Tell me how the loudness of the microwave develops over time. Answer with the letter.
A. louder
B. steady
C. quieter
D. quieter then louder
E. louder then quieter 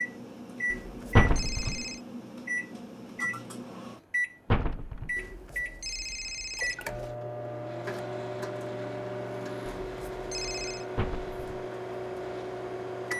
B.